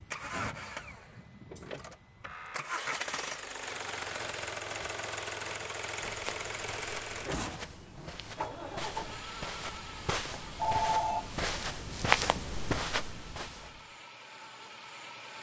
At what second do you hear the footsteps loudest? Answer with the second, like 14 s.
12 s.